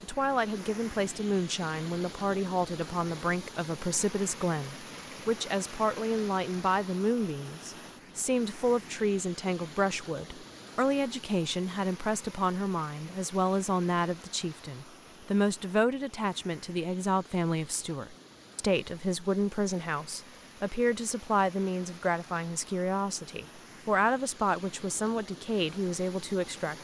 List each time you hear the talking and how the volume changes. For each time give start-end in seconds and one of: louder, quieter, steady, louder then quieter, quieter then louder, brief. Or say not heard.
0.0-26.7 steady.